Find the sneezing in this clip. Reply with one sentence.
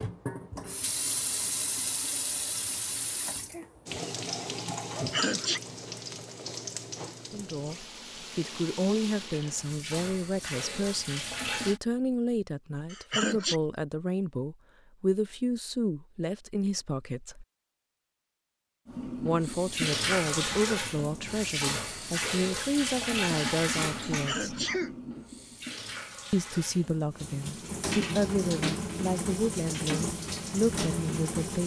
The sneezing can be heard from 4.9 to 5.6 s, from 12.9 to 13.6 s and from 24.1 to 24.9 s.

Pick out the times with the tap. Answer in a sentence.
You can hear the tap from 0.0 to 11.8 s and from 18.9 to 31.6 s.